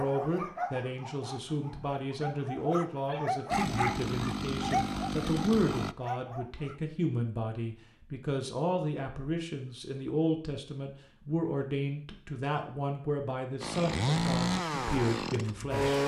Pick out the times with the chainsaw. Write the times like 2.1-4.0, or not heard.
3.5-6.0, 13.6-16.0.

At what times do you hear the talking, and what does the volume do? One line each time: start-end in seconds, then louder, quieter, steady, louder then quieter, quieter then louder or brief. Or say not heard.
0.0-16.0 steady.